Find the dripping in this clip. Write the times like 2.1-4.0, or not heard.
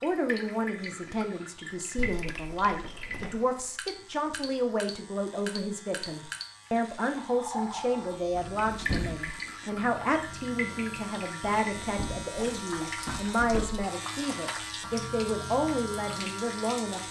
0.0-17.0.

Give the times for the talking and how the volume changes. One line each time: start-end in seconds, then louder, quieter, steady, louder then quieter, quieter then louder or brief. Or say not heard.
0.0-17.0 steady.